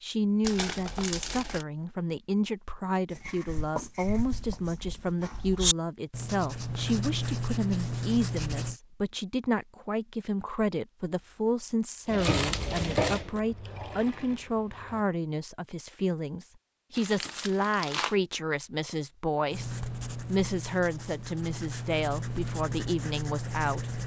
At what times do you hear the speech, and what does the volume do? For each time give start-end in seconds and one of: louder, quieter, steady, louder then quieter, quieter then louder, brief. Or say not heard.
0.0-24.0 steady.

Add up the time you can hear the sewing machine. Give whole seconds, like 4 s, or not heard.
3 s.